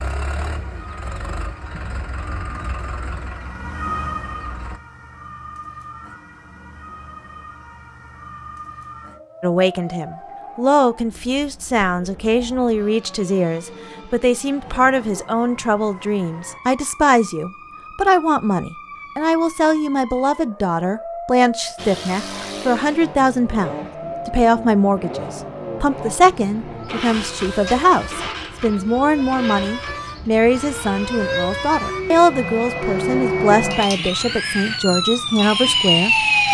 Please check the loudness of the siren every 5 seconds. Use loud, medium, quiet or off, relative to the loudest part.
quiet, quiet, quiet, quiet, quiet, quiet, medium, loud.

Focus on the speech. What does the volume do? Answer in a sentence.
The loudness of the speech stays about the same.